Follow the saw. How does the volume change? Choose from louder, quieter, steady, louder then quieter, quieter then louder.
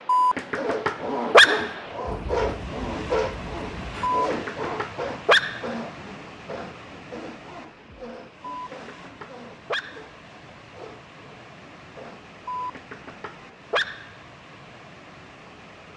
quieter.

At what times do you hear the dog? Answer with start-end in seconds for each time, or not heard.
0.1-1.7, 4.0-5.7, 8.5-10.1, 12.4-14.1.